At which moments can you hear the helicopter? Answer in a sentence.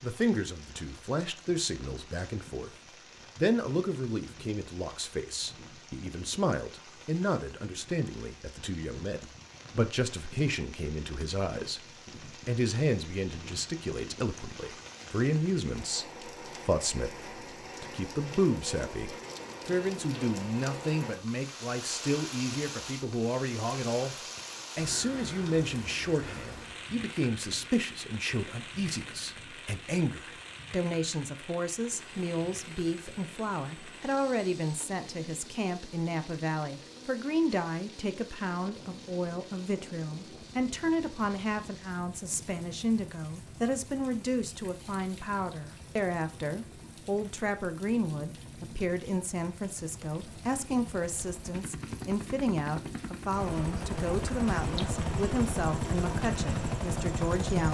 You can hear the helicopter from 31.9 to 57.6 s.